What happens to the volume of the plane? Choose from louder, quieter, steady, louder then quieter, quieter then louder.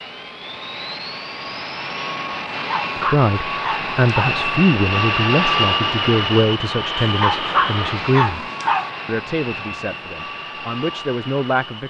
louder then quieter.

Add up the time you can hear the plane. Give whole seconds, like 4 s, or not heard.
12 s.